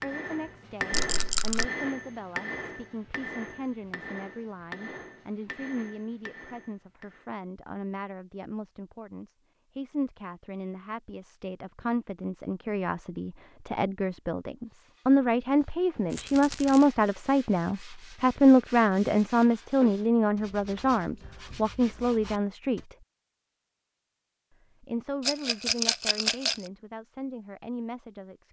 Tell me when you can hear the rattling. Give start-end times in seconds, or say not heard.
0.9-1.6, 16.1-16.9, 25.2-26.6.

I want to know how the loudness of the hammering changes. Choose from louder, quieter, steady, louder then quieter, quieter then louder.
quieter.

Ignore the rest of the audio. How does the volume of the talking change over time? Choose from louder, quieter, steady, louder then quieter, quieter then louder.
louder then quieter.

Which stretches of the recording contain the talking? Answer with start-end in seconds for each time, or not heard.
0.0-22.9, 24.8-28.4.